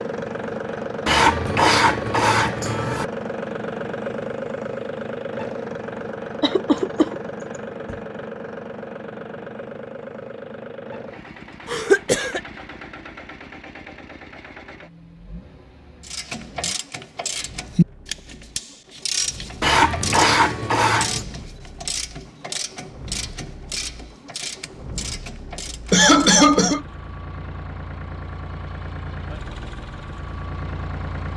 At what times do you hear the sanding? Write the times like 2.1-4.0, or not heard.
1.1-3.0, 19.6-21.2.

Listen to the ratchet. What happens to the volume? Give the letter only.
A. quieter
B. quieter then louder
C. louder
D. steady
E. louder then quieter
A.